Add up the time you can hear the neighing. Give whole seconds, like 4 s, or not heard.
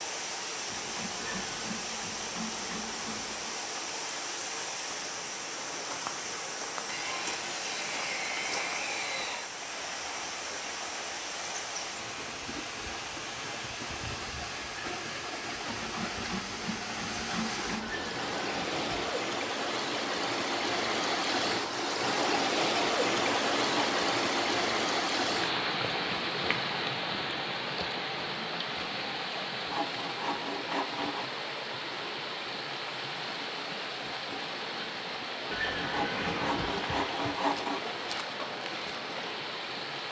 4 s.